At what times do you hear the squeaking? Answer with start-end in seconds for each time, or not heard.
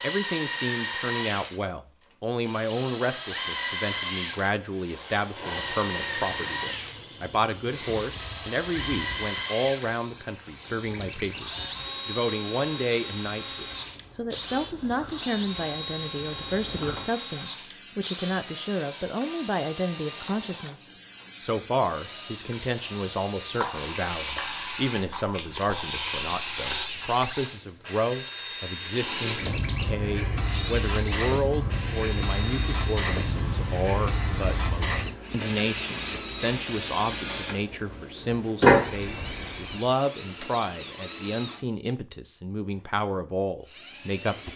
10.9-11.5, 29.4-29.9.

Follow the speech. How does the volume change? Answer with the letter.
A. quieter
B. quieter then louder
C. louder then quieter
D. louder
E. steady
E.